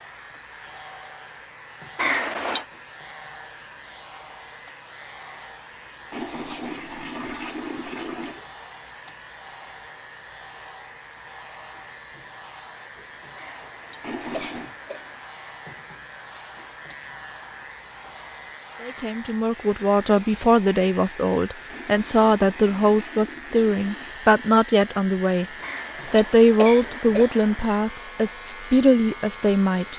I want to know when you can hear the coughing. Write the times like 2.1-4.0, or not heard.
1.9-2.6, 13.3-15.2, 25.6-27.6.